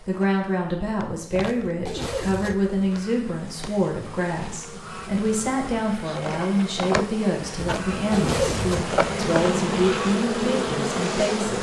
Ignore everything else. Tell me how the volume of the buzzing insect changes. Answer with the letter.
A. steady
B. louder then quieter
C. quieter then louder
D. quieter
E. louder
E.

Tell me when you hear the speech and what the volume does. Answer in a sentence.
You can hear the speech from 0.1 to 11.5 s, at a steady volume.